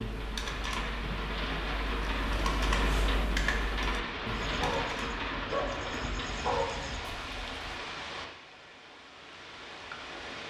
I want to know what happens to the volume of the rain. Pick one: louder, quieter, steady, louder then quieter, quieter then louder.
quieter.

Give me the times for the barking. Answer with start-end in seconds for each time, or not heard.
4.3-7.8.